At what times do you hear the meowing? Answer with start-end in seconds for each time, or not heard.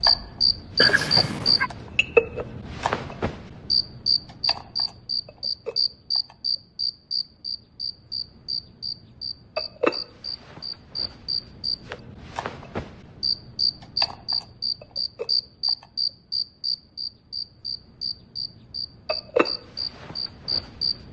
0.8-1.7.